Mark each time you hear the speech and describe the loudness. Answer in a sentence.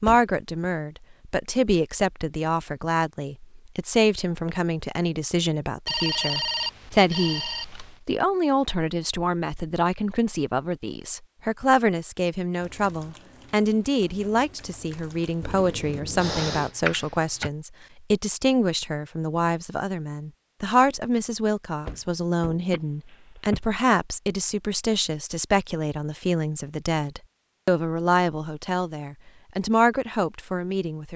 You can hear the speech from 0.0 to 31.1 s, at a steady volume.